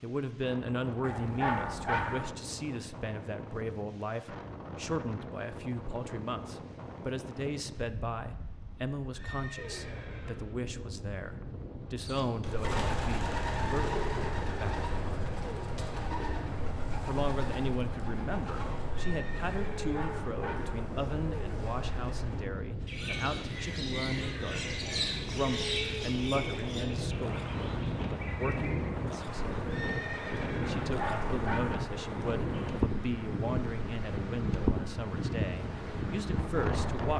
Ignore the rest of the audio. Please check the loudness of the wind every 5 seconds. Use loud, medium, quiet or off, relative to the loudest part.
medium, medium, medium, medium, medium, loud, loud, loud.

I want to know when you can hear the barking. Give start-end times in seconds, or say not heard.
1.0-2.3, 19.8-20.9, 30.9-31.9.